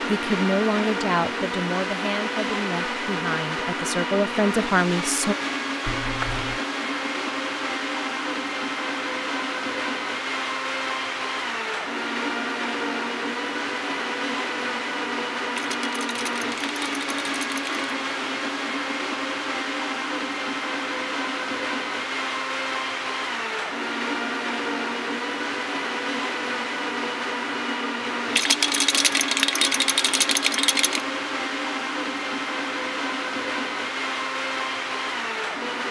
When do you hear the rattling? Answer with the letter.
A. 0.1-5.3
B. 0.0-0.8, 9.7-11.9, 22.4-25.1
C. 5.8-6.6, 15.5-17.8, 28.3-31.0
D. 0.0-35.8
C.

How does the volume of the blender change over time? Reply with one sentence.
The volume of the blender stays about the same.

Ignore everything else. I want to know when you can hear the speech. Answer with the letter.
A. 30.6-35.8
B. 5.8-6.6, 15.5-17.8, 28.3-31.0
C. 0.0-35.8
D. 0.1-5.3
D.